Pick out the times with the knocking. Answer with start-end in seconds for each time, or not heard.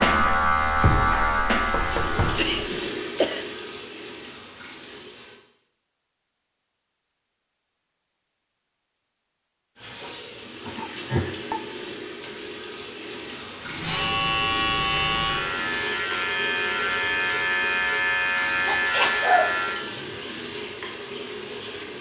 1.7-2.8.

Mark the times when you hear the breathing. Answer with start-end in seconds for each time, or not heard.
not heard.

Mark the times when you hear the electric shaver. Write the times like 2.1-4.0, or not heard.
0.0-2.5, 13.7-19.9.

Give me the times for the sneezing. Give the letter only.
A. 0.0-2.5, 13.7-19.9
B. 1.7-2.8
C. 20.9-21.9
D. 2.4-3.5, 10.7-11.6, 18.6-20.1
D.